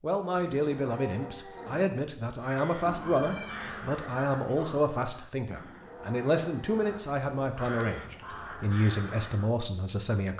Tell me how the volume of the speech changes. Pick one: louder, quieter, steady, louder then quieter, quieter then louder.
steady.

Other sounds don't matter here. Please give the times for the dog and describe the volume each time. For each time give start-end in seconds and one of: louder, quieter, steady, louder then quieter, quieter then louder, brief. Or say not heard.
not heard.